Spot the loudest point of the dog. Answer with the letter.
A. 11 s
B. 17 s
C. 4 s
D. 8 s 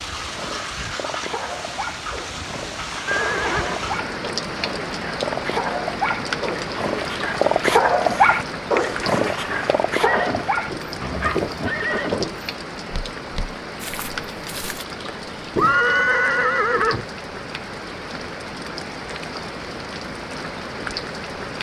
D.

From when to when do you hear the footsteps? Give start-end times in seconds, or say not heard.
10.7-15.8.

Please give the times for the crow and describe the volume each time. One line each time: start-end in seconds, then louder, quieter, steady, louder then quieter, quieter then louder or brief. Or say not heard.
not heard.